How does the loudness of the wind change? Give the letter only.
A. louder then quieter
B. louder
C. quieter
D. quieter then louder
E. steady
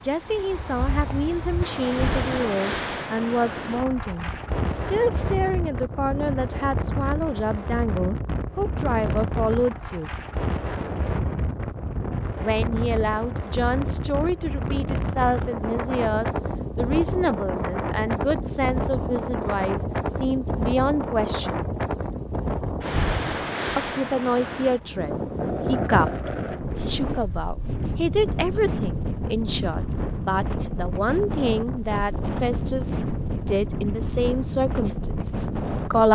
E.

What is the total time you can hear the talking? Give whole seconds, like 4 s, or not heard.
32 s.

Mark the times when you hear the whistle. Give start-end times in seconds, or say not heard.
not heard.